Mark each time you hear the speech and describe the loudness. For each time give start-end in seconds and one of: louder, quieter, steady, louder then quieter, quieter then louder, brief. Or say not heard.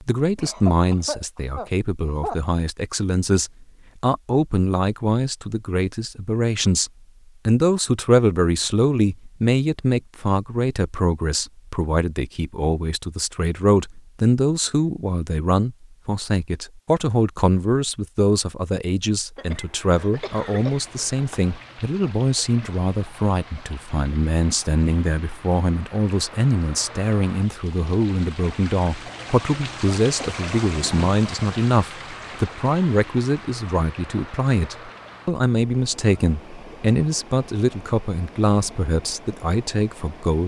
0.0-40.4 steady.